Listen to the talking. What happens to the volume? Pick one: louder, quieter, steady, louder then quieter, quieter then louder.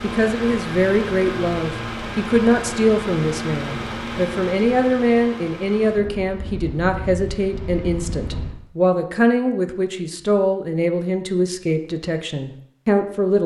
steady.